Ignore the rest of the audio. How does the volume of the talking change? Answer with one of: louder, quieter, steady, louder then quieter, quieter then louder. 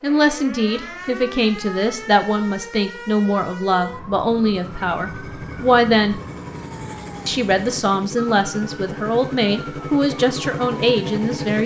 steady.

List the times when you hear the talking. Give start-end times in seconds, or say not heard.
0.0-6.2, 7.2-11.6.